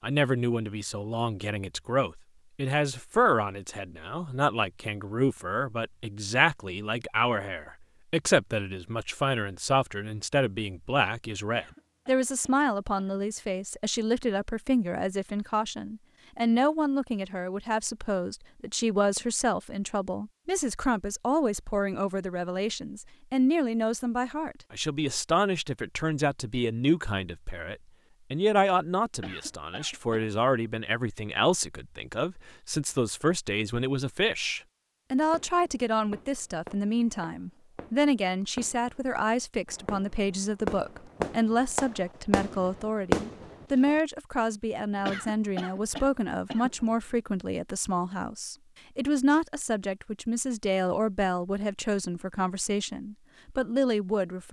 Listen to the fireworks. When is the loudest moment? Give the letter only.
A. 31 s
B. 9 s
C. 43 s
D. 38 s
C.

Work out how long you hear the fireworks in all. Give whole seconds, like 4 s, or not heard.
9 s.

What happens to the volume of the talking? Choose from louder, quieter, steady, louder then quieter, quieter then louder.
steady.